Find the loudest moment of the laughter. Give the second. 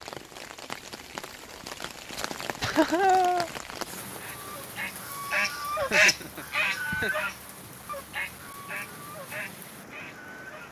3 s.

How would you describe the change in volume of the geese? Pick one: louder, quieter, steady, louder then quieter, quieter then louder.
louder then quieter.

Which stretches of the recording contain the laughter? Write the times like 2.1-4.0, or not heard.
2.6-3.5, 5.8-7.1.